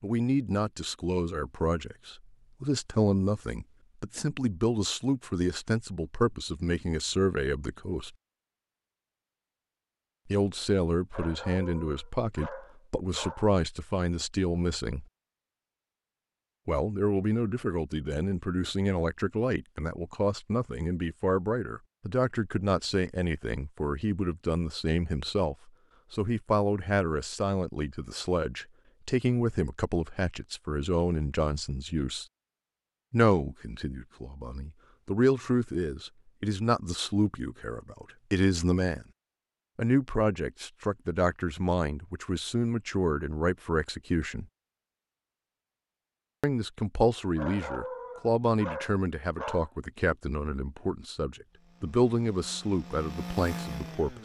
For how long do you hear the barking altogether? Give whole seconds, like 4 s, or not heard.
5 s.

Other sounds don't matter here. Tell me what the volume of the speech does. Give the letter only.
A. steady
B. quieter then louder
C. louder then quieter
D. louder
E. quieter
A.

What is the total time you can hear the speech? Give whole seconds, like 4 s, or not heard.
47 s.